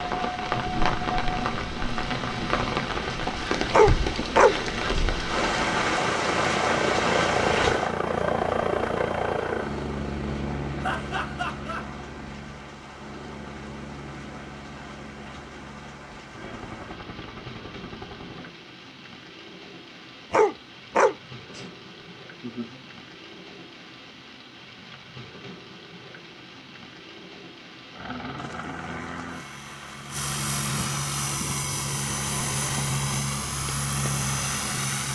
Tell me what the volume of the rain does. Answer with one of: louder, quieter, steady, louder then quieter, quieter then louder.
quieter.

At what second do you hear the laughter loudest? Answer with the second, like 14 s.
11 s.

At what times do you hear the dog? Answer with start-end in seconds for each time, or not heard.
3.7-5.0, 20.3-21.6.